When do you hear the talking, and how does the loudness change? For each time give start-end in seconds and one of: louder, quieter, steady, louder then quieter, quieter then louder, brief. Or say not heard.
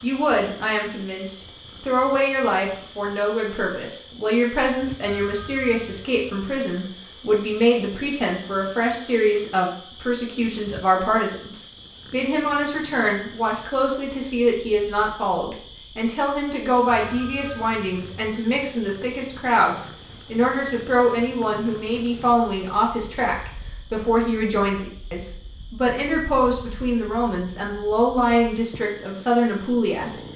0.0-30.1 steady.